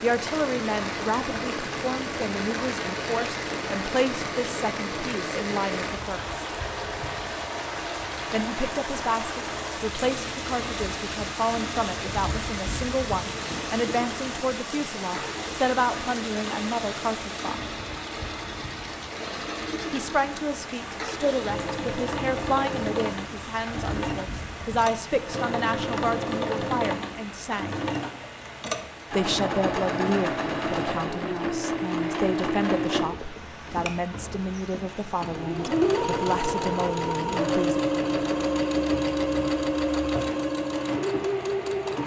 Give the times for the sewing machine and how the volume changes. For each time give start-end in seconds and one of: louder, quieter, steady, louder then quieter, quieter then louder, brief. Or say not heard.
0.0-42.0 louder.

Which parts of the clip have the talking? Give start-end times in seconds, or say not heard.
0.0-6.4, 8.3-17.5, 19.9-27.8, 29.1-37.8.